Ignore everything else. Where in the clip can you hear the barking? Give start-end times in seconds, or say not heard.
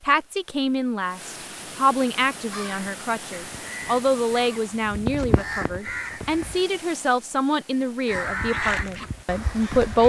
not heard.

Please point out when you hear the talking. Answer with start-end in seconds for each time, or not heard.
0.1-10.0.